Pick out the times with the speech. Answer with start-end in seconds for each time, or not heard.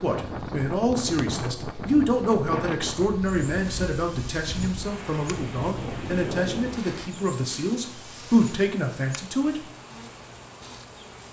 0.0-9.6.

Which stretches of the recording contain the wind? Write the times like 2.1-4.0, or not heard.
0.0-7.1.